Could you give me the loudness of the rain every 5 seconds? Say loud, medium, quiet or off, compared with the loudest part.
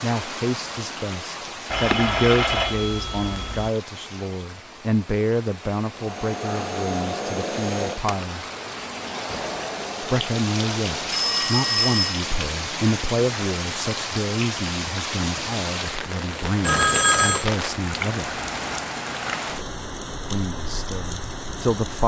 medium, medium, loud, loud, medium.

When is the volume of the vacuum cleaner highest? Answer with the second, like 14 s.
7 s.